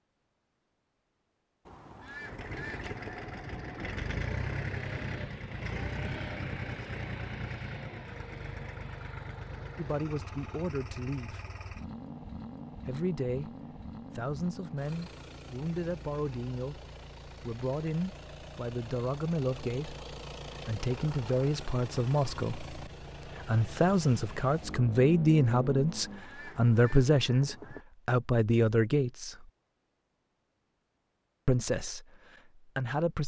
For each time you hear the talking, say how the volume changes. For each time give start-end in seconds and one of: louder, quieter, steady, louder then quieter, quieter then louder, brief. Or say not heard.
9.8-11.4 brief
12.8-29.5 louder
31.4-33.2 brief.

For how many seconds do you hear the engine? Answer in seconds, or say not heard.
24 s.